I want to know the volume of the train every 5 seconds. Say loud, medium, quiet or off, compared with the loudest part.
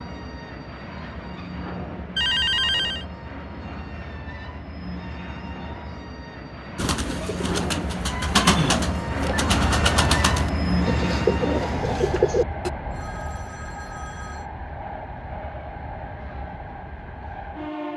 medium, loud, loud, medium.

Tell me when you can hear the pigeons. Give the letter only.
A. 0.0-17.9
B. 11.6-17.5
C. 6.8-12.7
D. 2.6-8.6
C.